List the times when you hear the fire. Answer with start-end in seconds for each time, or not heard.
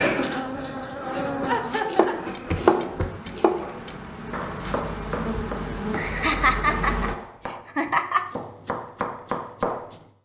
not heard.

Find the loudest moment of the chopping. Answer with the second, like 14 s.
3 s.